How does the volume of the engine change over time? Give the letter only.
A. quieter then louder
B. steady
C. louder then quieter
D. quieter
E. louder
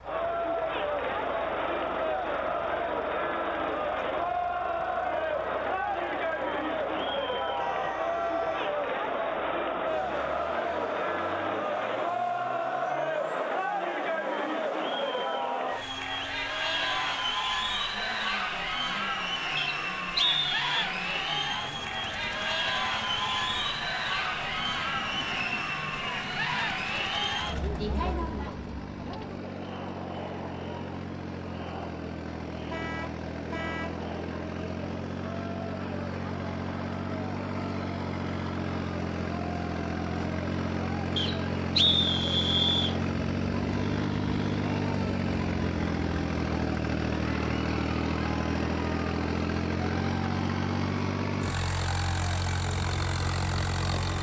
E.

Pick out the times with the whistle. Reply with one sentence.
You can hear the whistle from 19.6 to 20.9 s and from 41.1 to 43.0 s.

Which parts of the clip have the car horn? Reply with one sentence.
The car horn can be heard from 7.5 to 8.8 s and from 32.7 to 34.0 s.